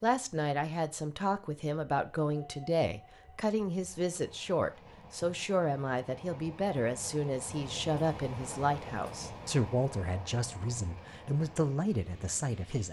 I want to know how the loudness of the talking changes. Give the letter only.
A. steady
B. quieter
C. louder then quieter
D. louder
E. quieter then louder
A.